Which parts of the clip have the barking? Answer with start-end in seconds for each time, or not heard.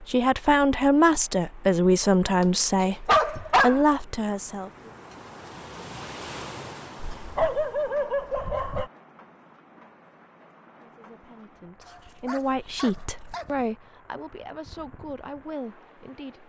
2.4-3.9, 7.0-8.8, 11.8-13.6.